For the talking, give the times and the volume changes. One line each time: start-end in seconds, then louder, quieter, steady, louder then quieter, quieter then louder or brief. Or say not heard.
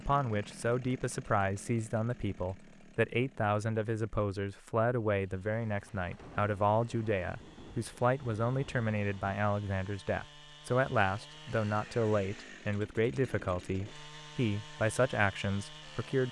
0.0-16.2 steady.